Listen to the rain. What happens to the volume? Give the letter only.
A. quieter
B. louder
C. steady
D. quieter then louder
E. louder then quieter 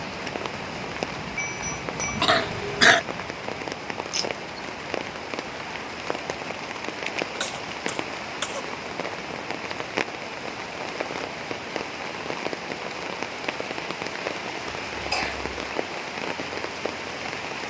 C.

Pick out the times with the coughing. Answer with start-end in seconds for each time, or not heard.
2.2-3.0, 7.4-8.6, 14.7-15.4.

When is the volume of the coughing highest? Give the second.
3 s.